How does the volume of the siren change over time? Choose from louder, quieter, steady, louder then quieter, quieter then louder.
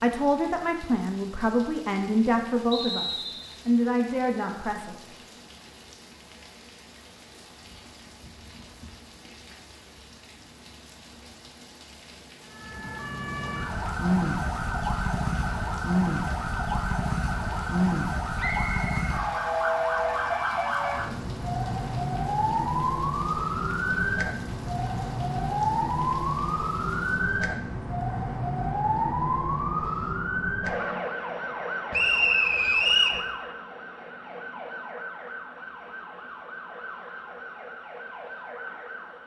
quieter.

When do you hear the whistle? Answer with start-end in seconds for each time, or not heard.
2.7-3.5, 18.4-18.9, 31.9-33.2.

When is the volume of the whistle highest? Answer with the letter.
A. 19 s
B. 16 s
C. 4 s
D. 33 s
D.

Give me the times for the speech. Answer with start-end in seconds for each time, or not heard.
0.0-5.0.